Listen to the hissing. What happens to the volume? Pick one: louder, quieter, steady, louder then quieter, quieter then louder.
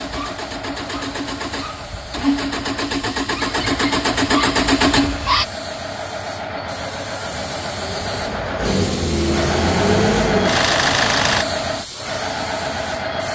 louder.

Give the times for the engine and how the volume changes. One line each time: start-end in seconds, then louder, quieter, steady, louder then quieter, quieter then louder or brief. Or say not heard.
0.0-5.5 louder
7.2-11.4 louder.